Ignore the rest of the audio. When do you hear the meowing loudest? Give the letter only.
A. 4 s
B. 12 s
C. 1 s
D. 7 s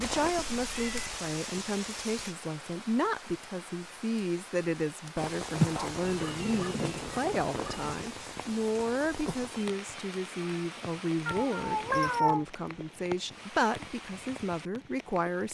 B.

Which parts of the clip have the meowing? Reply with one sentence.
The meowing can be heard from 0.5 to 1.1 s, from 6.0 to 8.0 s and from 11.2 to 12.4 s.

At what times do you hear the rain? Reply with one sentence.
You can hear the rain from 0.0 to 15.4 s.